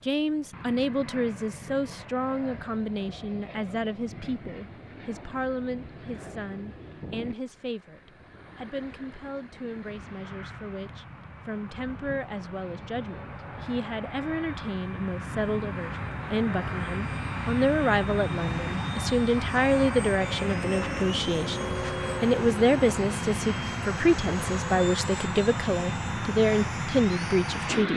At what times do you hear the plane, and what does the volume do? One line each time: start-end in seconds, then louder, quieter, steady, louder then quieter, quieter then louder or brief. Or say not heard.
0.0-27.9 louder.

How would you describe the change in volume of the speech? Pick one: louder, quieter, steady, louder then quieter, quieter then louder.
quieter then louder.